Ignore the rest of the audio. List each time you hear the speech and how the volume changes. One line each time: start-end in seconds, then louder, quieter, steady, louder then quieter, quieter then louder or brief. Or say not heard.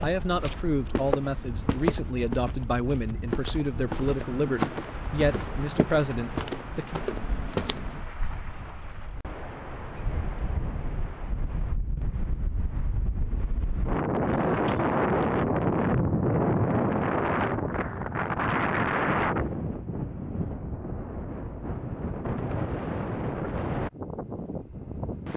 0.0-7.0 steady.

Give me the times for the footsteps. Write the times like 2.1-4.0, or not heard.
0.0-8.0.